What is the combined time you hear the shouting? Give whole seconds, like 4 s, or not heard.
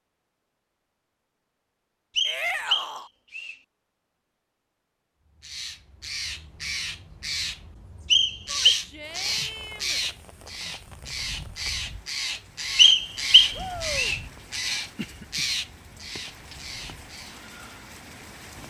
3 s.